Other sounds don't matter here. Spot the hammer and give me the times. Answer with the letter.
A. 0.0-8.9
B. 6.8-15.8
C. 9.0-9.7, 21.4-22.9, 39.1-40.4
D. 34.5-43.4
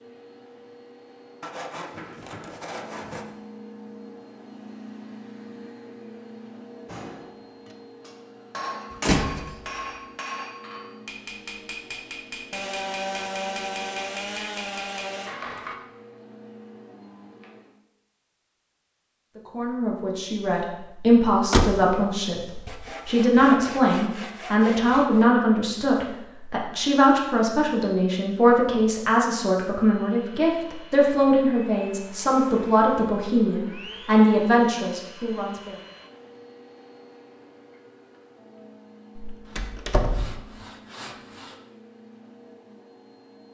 B.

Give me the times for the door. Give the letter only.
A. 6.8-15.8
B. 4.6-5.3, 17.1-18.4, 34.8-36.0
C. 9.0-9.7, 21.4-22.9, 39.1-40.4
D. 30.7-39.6
C.